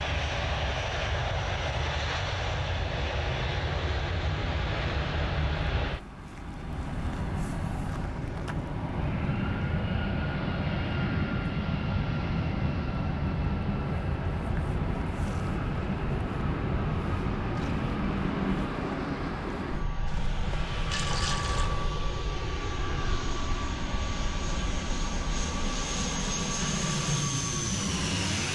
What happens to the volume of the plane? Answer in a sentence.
The volume of the plane stays about the same.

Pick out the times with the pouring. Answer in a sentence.
You can hear the pouring from 20.4 to 21.7 s.